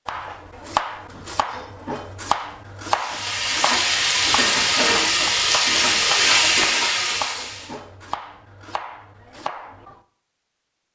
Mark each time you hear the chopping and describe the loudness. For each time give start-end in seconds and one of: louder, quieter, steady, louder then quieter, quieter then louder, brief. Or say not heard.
0.1-10.0 quieter.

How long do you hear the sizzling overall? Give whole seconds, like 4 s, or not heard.
5 s.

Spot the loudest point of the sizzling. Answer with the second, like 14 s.
6 s.